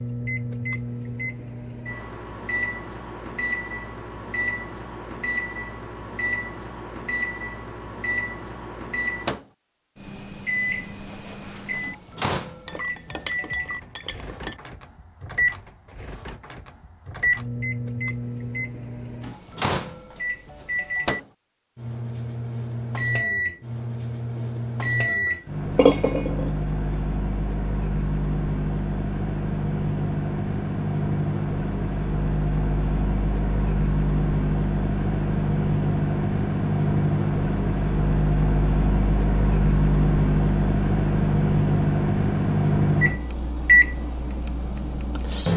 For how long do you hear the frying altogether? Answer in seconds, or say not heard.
not heard.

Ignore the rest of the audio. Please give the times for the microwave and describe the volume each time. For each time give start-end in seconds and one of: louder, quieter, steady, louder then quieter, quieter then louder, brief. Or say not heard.
0.0-45.5 louder.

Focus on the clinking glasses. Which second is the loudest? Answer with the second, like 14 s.
26 s.